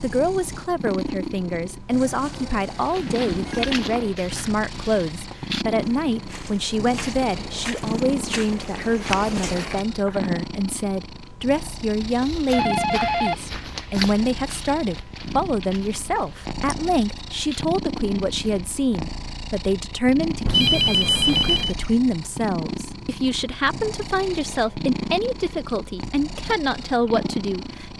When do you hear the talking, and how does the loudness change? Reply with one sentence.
The talking can be heard from 0.0 to 27.9 s, at a steady volume.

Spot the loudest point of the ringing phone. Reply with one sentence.
The volume of the ringing phone peaks at 21 seconds.